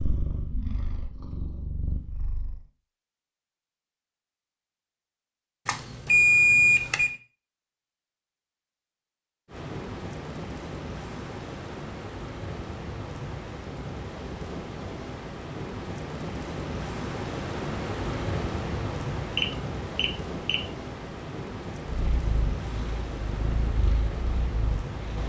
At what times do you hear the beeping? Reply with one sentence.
You can hear the beeping from 5.7 to 7.2 s and from 19.4 to 20.6 s.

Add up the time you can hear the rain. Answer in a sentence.
The rain can be heard for 16 seconds in total.